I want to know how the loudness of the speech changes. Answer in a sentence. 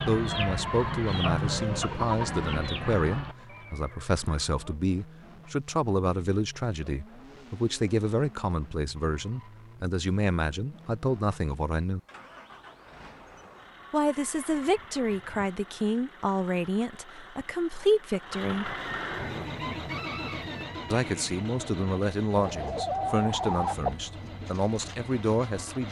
The volume of the speech stays about the same.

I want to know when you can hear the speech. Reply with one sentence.
The speech can be heard from 0.0 to 12.0 s, from 13.9 to 18.8 s and from 20.9 to 25.8 s.